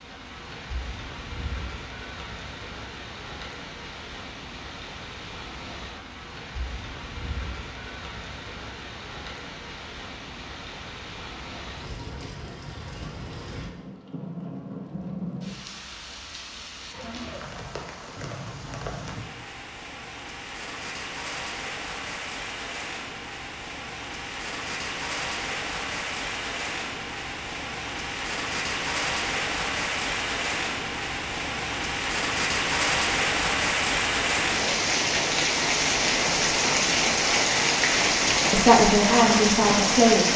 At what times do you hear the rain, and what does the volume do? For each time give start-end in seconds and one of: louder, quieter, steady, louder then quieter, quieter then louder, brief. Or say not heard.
0.0-40.3 louder.